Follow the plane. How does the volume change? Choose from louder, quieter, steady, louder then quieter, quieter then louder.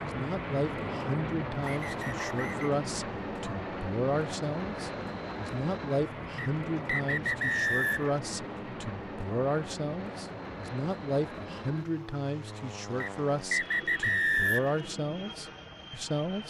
quieter.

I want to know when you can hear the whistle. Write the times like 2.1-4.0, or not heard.
1.6-2.7, 6.3-8.2, 13.0-14.8.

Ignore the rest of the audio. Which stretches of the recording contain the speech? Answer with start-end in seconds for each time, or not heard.
0.0-16.4.